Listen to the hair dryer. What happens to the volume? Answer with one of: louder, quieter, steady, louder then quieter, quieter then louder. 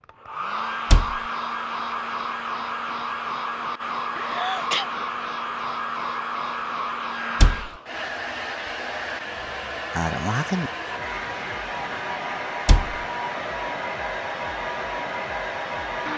steady.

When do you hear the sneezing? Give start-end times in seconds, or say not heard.
4.2-4.8, 9.9-10.7.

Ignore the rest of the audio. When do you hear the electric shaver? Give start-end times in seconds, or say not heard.
not heard.